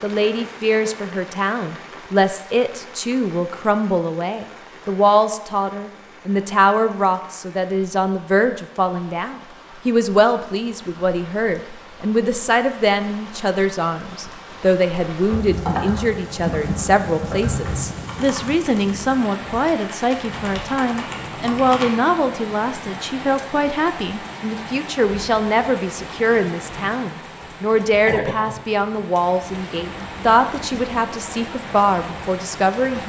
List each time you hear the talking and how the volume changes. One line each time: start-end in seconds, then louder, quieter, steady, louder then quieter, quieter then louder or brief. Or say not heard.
0.0-33.0 steady.